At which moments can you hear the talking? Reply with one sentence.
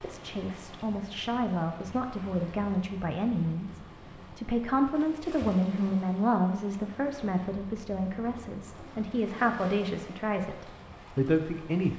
The talking can be heard from 0.0 to 11.9 s.